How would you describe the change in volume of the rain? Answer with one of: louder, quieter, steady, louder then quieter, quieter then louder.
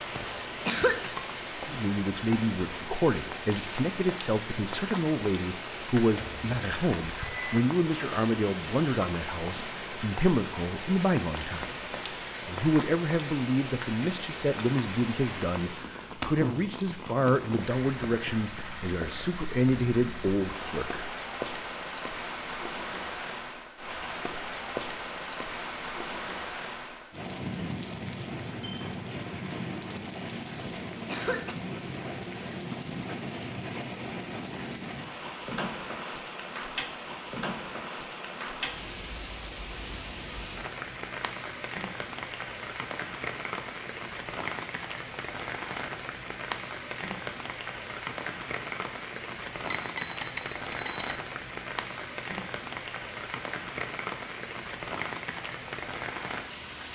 steady.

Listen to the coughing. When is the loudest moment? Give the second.
1 s.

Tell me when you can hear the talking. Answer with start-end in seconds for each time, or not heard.
1.6-11.8, 12.4-21.1.